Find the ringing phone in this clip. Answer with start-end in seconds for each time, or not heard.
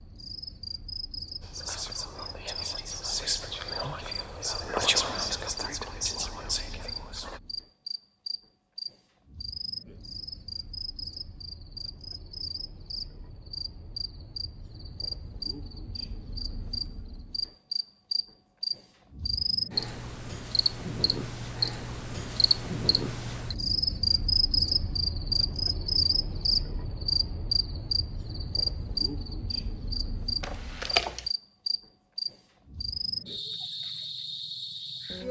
30.4-31.3.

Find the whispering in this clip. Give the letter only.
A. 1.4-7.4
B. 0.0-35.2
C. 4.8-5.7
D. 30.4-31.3
A.